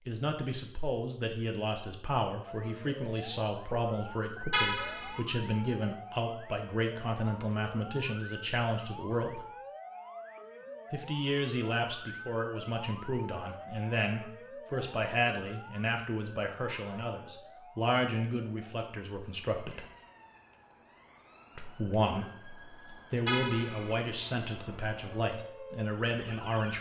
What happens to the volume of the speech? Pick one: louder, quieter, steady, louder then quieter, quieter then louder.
steady.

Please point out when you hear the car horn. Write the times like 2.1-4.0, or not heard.
4.5-5.2, 23.2-23.9.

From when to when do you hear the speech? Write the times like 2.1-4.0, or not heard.
0.1-9.4, 10.9-19.9, 21.6-26.7.